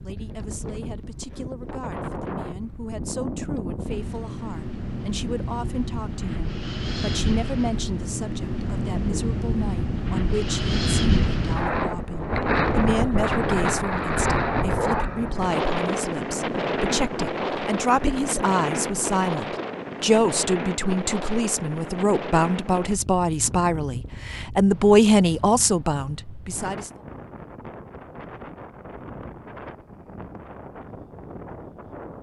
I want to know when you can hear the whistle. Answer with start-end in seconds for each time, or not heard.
not heard.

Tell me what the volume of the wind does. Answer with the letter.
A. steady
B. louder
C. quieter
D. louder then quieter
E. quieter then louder
D.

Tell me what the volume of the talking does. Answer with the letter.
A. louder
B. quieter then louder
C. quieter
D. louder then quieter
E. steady
A.